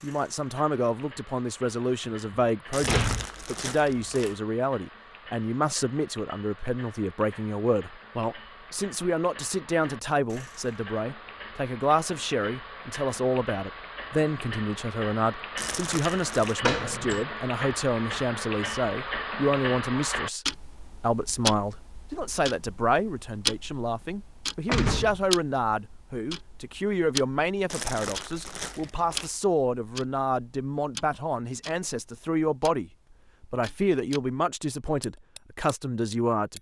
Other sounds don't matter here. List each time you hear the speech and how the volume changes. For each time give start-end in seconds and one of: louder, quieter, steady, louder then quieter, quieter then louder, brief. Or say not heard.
0.0-36.5 steady.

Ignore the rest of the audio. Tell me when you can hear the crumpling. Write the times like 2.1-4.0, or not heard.
2.7-4.3, 15.6-16.6, 27.7-29.3.